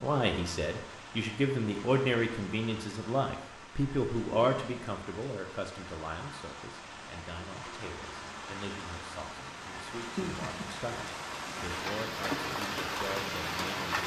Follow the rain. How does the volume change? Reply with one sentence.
The loudness of the rain goes up.